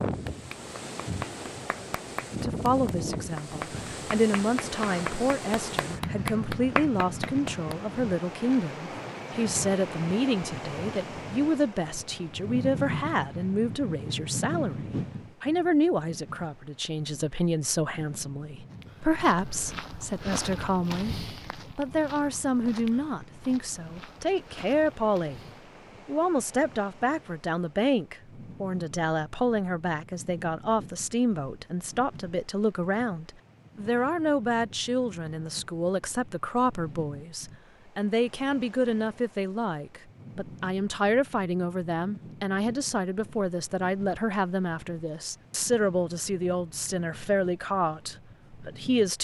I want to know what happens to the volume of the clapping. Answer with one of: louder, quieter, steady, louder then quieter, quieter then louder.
louder.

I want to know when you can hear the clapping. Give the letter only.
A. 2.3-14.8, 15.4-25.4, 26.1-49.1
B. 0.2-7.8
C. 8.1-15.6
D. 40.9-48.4
B.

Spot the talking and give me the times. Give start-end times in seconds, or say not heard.
2.3-14.8, 15.4-25.4, 26.1-49.1.